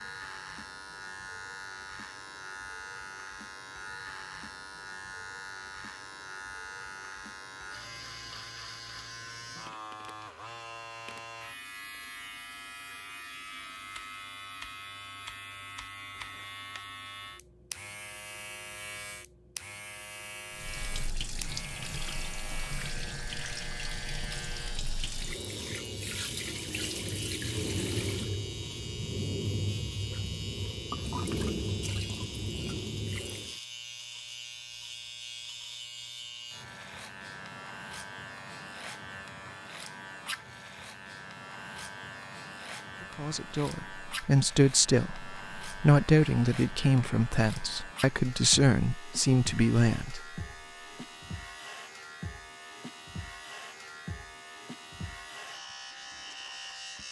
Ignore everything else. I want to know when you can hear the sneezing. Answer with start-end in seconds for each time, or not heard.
not heard.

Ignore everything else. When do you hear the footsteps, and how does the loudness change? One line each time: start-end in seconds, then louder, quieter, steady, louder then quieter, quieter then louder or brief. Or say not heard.
not heard.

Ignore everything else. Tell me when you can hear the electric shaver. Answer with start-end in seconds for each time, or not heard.
0.0-57.0.